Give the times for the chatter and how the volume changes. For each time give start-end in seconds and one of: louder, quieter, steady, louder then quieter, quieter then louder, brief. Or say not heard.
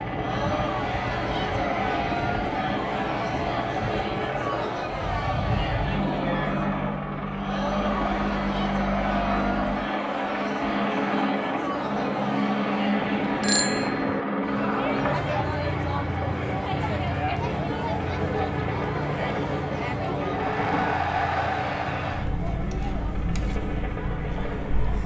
0.0-25.0 steady.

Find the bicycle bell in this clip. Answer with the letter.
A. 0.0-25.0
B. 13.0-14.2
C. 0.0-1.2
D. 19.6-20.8
B.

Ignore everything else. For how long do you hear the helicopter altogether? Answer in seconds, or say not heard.
25 s.